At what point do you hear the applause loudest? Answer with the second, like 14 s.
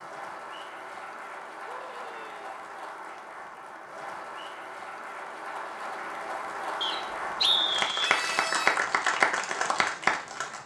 9 s.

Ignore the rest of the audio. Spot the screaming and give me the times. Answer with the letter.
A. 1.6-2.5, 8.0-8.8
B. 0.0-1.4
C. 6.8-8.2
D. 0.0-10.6
A.